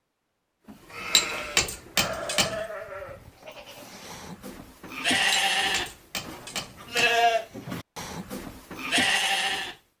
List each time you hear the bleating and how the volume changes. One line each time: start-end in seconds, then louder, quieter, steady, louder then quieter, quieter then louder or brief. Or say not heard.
0.7-9.8 quieter then louder.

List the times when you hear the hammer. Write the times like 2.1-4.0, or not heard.
1.1-2.6, 5.3-7.1.